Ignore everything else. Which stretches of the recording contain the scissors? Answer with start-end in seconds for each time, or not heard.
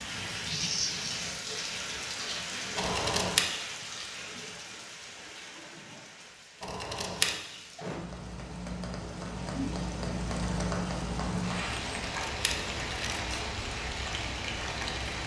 2.8-3.5, 6.6-7.3, 11.8-13.5.